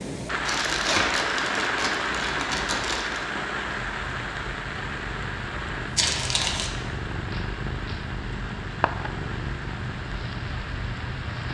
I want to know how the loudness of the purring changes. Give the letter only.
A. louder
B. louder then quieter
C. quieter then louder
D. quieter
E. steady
A.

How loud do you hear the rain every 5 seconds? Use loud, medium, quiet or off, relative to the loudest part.
loud, medium, medium.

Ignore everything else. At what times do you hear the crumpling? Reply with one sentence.
The crumpling can be heard from 0.5 to 3.2 s and from 6.0 to 6.7 s.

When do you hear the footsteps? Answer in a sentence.
The footsteps can't be heard in this clip.